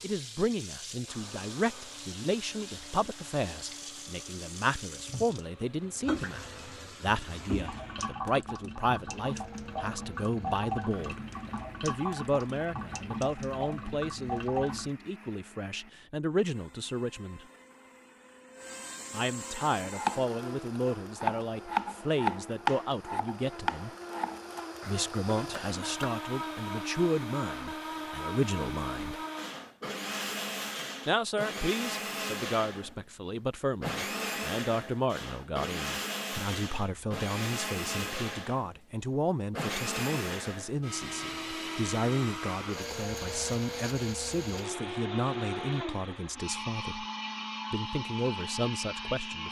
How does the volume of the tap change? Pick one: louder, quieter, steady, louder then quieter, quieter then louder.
louder.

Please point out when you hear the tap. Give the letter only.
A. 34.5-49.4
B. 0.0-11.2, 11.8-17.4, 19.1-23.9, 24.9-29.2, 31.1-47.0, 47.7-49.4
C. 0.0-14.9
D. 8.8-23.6
C.